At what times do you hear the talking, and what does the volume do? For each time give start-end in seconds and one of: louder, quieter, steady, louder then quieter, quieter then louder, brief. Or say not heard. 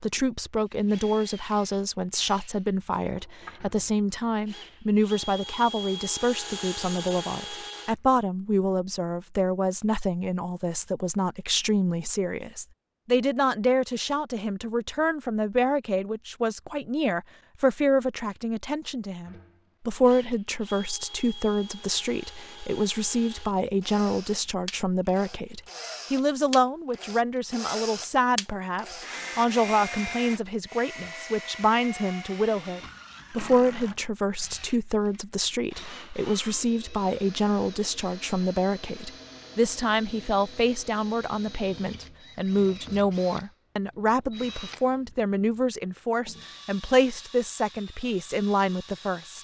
0.0-49.3 steady.